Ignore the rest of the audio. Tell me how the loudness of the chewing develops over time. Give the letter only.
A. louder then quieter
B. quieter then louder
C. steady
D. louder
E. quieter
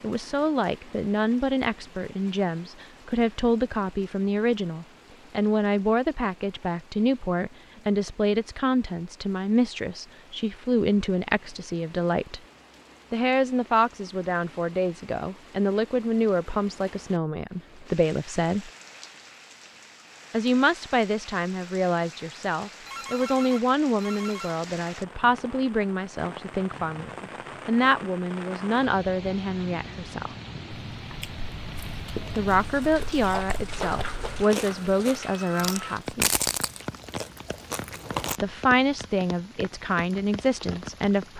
A.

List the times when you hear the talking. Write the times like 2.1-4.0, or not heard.
0.0-12.4, 13.1-18.7, 20.3-30.4, 32.4-36.2, 38.4-41.3.